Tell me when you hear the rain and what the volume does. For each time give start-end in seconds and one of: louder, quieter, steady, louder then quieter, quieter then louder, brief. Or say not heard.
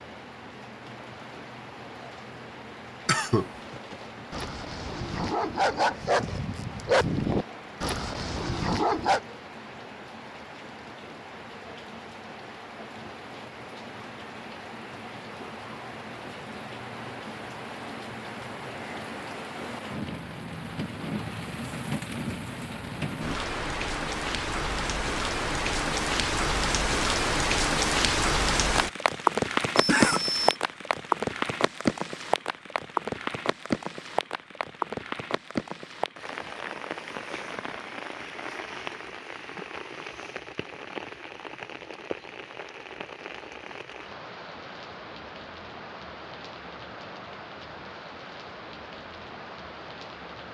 0.0-50.5 louder then quieter.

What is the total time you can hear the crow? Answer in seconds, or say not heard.
not heard.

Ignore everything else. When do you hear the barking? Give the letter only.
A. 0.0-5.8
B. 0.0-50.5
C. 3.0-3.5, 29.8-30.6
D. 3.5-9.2
D.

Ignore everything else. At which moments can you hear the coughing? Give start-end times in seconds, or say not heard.
3.0-3.5, 29.8-30.6.